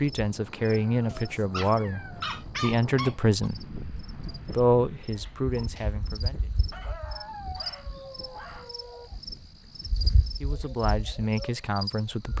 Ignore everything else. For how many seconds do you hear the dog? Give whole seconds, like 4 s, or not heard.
5 s.